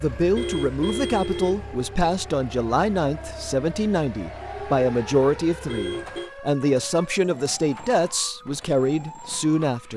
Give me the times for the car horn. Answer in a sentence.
The car horn can be heard from 0.3 to 1.6 s and from 5.7 to 6.3 s.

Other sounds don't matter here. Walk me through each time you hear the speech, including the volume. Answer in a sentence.
The speech can be heard from 0.0 to 9.9 s, at a steady volume.